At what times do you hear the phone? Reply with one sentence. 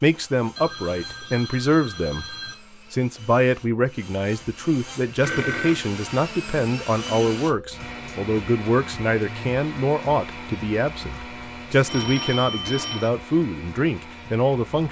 You can hear the phone from 0.6 to 2.5 s, from 5.2 to 5.9 s and from 11.8 to 13.1 s.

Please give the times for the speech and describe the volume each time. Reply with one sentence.
The speech can be heard from 0.0 to 14.8 s, at a steady volume.